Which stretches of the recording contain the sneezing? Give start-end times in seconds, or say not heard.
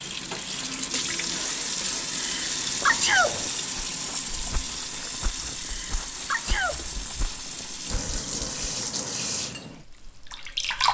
2.1-3.5, 5.5-6.8.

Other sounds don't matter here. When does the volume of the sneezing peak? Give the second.
3 s.